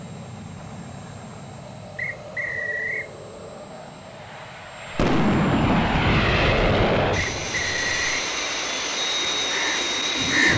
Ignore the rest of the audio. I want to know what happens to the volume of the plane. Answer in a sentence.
The volume of the plane goes up.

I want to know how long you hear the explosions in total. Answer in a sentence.
You can hear the explosions for 3 seconds altogether.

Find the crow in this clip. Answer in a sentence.
The crow can be heard from 9.0 to 10.5 s.